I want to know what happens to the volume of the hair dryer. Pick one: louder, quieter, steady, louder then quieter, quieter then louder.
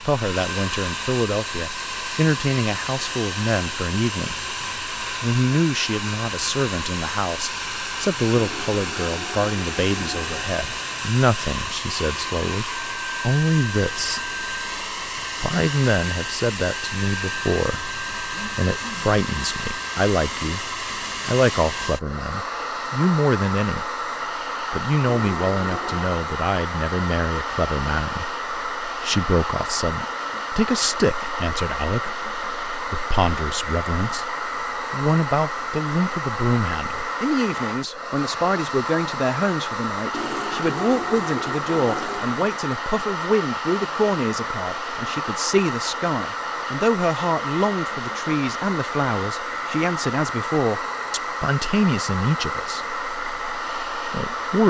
steady.